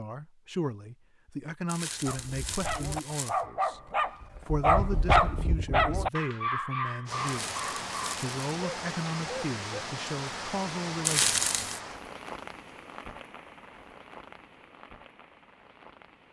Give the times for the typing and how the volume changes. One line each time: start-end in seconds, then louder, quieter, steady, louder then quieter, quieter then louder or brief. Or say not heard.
not heard.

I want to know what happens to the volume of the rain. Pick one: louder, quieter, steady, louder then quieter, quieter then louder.
quieter.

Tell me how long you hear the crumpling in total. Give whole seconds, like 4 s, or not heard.
4 s.